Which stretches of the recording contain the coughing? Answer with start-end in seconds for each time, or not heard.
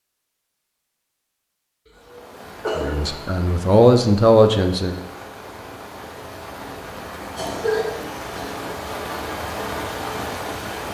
2.0-3.4, 7.3-8.6.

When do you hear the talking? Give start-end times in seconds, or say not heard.
2.8-5.0.